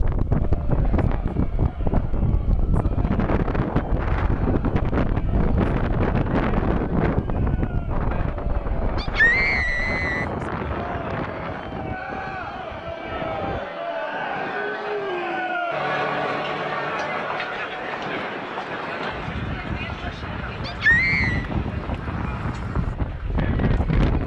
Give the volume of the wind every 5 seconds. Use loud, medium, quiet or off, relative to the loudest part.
loud, loud, medium, medium, loud.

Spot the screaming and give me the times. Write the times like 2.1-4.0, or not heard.
8.9-10.2, 20.6-21.4.